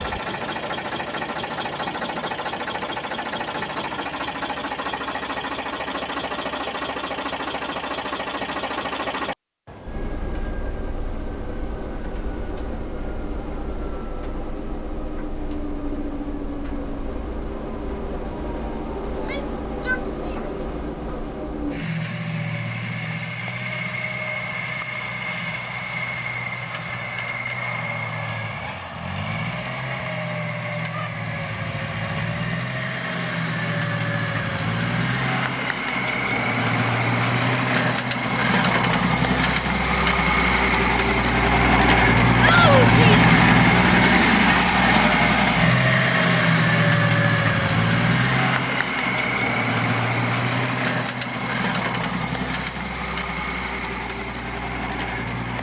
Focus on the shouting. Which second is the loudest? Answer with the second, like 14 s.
43 s.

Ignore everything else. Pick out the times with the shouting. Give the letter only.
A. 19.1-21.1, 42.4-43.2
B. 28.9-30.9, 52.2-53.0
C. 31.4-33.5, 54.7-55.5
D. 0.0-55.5
A.